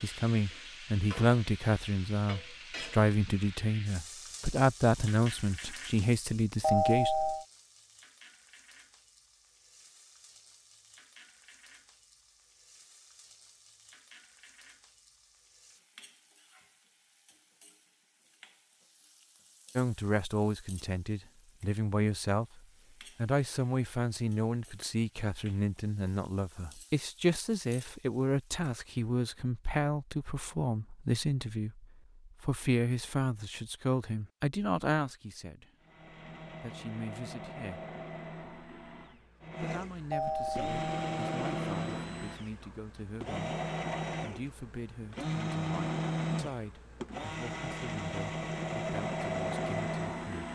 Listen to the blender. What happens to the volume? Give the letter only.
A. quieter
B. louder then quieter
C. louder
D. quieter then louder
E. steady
C.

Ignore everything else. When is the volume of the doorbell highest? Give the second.
7 s.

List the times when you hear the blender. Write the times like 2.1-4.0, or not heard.
35.8-50.5.